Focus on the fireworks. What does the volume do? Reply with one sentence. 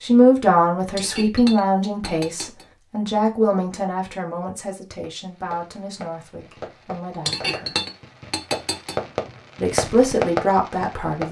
The volume of the fireworks goes up.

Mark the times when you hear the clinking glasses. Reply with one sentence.
The clinking glasses can be heard from 0.9 to 2.6 s and from 7.2 to 8.9 s.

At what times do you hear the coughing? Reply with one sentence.
The coughing can't be heard in this clip.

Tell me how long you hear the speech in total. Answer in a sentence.
You can hear the speech for 9 seconds altogether.